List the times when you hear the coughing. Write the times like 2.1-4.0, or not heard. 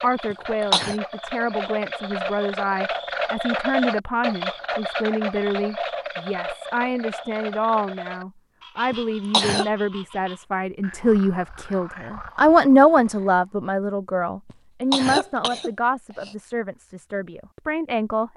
0.3-0.9, 8.9-9.7, 14.5-16.4.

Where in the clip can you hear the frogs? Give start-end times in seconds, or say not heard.
0.0-13.4.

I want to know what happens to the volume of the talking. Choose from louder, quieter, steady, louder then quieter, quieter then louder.
louder then quieter.